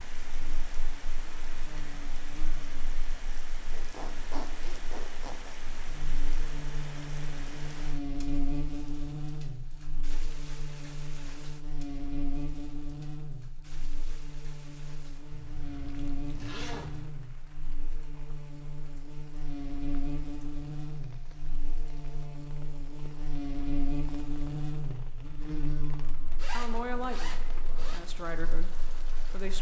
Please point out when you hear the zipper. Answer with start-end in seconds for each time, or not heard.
3.7-5.5, 15.3-17.1, 26.4-28.0.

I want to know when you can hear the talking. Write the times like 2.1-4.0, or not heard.
26.5-29.5.